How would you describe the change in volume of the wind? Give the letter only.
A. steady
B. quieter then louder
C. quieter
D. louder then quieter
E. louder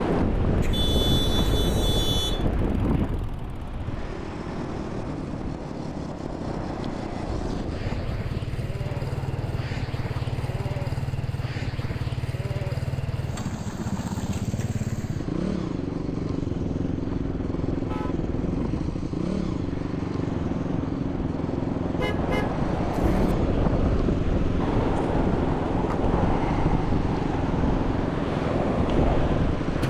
B.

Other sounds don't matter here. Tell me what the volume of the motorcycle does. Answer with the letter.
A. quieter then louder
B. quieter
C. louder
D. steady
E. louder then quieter
C.